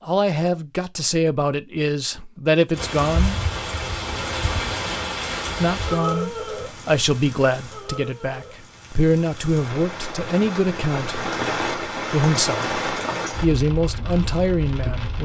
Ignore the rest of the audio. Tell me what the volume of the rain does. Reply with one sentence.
The loudness of the rain goes down, then up.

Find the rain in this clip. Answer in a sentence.
The rain can be heard from 2.7 to 15.2 s.